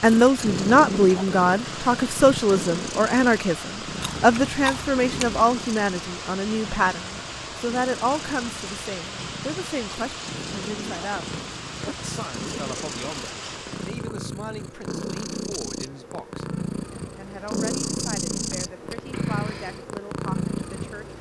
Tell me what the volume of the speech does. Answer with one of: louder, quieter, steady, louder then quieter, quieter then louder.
quieter.